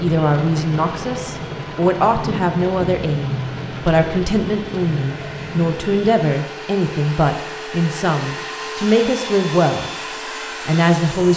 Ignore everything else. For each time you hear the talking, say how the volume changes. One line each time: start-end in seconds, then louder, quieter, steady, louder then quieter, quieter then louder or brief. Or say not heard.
0.0-9.9 steady
10.7-11.3 brief.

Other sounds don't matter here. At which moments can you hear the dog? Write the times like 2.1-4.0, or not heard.
not heard.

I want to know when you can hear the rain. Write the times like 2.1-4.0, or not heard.
0.0-6.2.